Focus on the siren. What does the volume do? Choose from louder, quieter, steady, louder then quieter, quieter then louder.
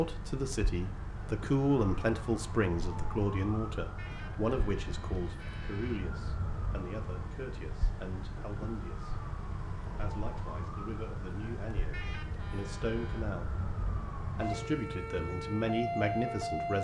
louder.